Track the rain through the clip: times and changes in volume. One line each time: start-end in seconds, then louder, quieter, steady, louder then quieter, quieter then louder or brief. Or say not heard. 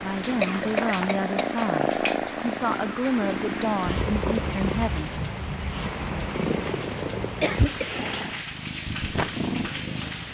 0.0-10.2 steady.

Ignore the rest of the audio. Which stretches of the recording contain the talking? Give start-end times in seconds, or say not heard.
0.0-5.2.